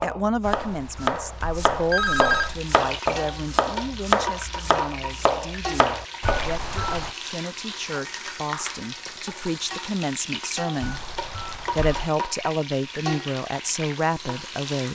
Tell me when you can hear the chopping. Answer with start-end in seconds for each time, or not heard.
0.0-6.6.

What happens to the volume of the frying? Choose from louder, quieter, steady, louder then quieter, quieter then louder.
steady.